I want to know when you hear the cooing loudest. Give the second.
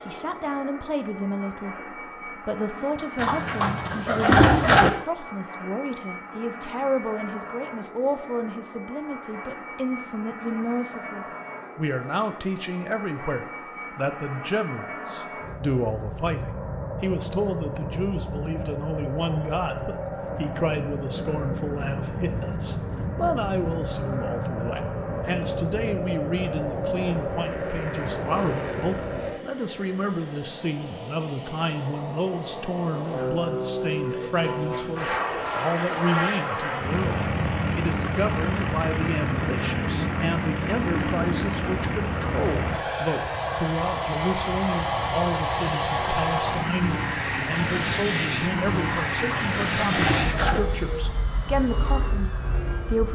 4 s.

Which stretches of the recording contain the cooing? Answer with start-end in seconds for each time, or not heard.
3.1-4.9, 48.9-50.6.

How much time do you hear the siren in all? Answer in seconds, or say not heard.
not heard.